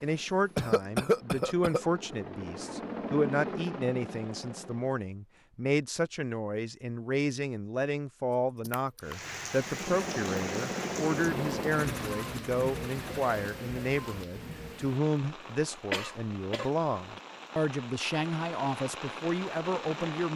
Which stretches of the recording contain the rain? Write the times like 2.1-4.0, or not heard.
9.0-20.3.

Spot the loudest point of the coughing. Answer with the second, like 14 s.
1 s.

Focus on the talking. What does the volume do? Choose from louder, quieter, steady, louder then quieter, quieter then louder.
steady.